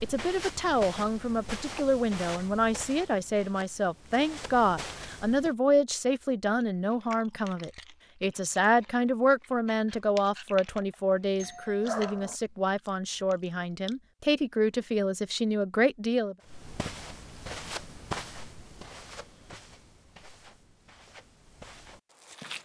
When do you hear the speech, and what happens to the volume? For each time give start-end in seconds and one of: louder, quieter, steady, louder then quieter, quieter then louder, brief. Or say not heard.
0.0-16.4 steady.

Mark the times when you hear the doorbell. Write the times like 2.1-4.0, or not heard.
11.3-12.3.